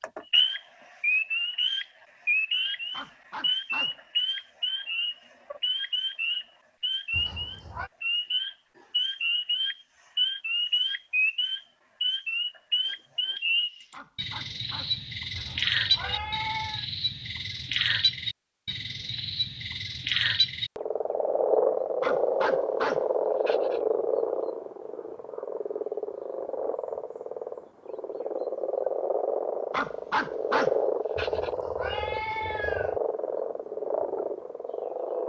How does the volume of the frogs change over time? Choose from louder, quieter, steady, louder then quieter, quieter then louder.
steady.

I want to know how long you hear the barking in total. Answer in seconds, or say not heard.
7 s.